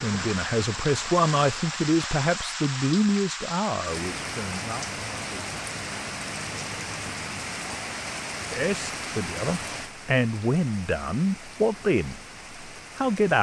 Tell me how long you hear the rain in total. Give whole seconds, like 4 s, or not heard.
13 s.